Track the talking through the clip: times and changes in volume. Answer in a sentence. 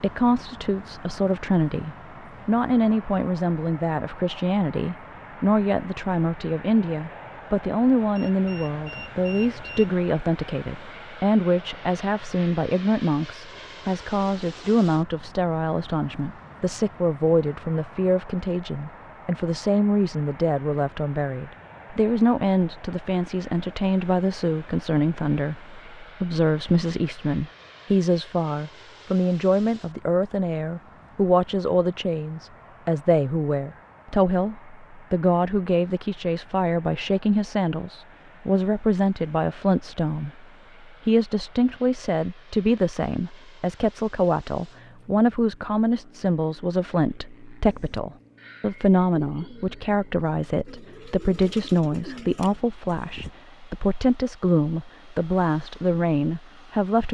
The talking can be heard from 0.0 to 40.5 s, at a steady volume; and from 41.0 to 57.0 s, at a steady volume.